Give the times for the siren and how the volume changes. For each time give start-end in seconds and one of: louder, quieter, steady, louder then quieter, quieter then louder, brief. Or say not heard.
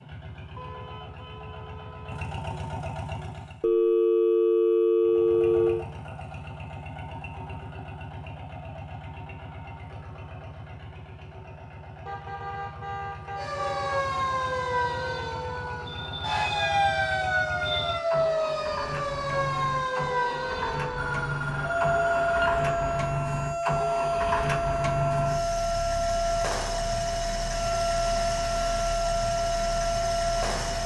13.3-30.8 steady.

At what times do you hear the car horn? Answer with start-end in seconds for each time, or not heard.
0.6-2.4, 12.1-14.1, 21.5-23.1.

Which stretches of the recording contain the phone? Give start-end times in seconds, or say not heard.
3.6-5.8, 15.8-18.0, 20.9-22.6.